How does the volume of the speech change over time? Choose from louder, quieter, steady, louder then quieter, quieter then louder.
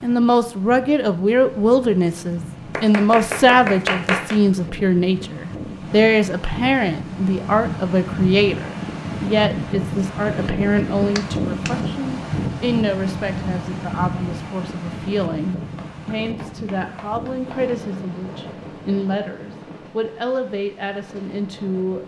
quieter.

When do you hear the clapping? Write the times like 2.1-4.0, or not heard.
2.8-4.4, 11.2-11.8, 15.8-17.8.